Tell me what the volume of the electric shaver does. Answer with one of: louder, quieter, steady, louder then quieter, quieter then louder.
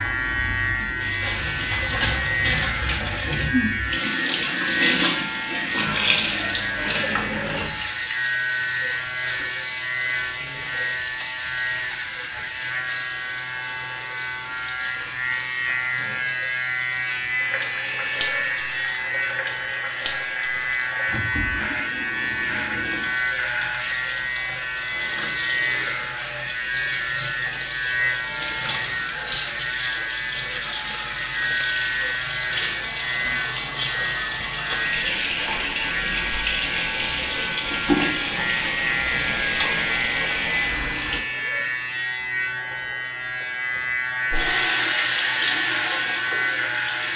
steady.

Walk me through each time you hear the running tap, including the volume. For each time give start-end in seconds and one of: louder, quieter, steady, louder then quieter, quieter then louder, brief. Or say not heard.
0.0-41.2 quieter then louder
44.3-47.1 brief.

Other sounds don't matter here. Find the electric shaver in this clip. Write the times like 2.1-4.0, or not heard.
0.0-47.1.